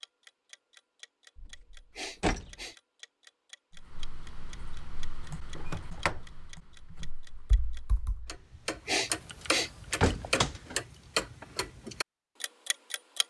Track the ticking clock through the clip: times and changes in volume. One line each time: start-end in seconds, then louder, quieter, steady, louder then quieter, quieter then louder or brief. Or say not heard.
0.0-13.2 louder.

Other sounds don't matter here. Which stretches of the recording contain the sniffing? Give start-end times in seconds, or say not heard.
1.9-2.8, 8.8-9.7.